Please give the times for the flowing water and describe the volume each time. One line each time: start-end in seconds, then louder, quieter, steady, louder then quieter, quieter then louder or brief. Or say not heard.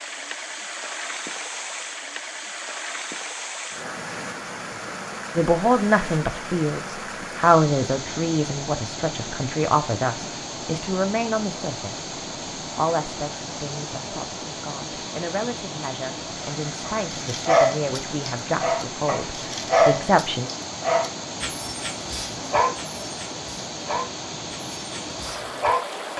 0.0-26.1 steady.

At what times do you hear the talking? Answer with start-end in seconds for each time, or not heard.
5.3-12.1, 12.8-20.5.